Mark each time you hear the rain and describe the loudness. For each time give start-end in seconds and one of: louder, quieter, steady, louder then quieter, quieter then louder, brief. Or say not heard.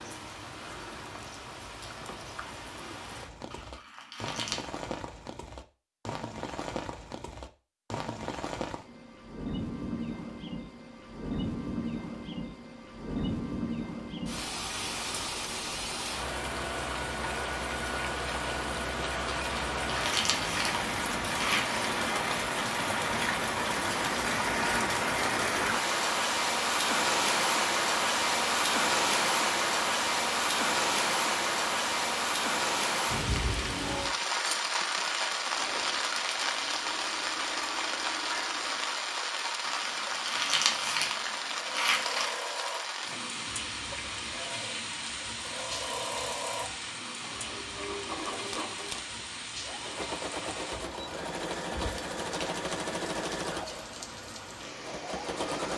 0.0-55.7 louder then quieter.